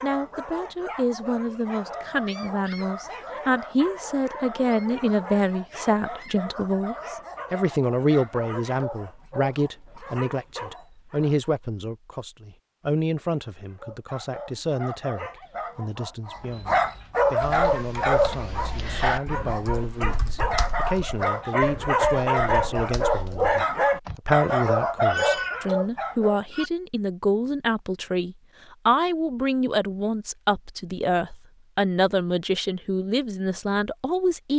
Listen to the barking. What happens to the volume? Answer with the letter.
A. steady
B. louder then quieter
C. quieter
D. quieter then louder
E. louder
E.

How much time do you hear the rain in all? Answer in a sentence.
You can't hear the rain here.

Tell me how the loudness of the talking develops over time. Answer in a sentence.
The volume of the talking goes down, then up.